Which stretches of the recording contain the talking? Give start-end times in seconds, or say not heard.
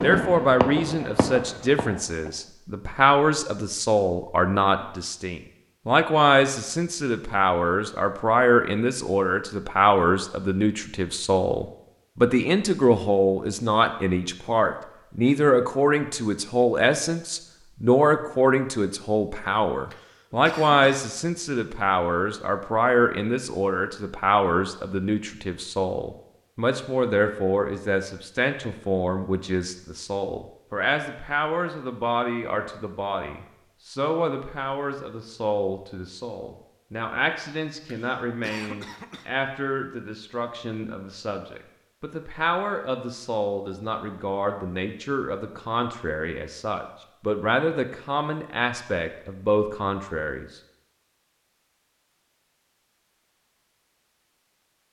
0.0-50.6.